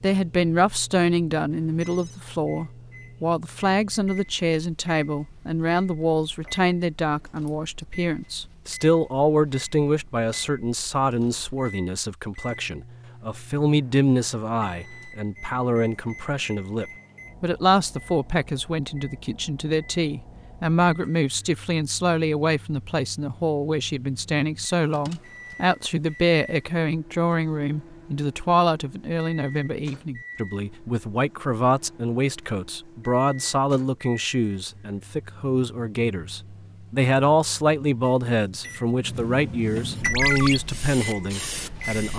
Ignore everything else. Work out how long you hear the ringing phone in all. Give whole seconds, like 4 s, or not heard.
2 s.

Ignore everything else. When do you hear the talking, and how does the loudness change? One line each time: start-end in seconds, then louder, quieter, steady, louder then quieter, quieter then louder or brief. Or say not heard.
0.0-42.1 steady.